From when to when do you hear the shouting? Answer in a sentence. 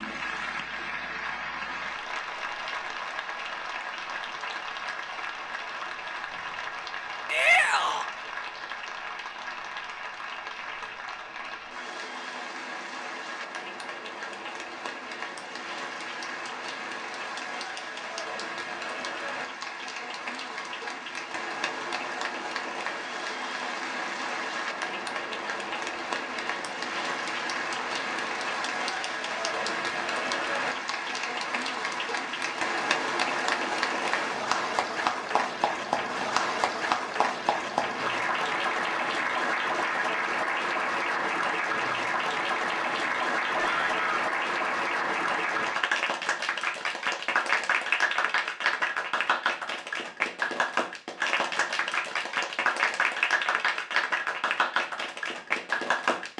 The shouting can be heard from 7.3 to 8.1 s and from 43.5 to 44.2 s.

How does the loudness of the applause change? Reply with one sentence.
The loudness of the applause goes up.